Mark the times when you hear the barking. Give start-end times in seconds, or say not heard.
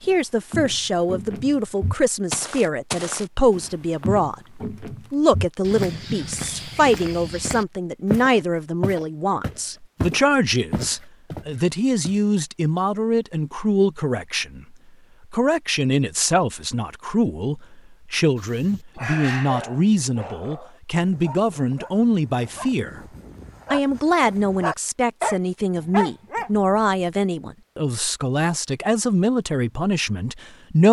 18.6-27.2.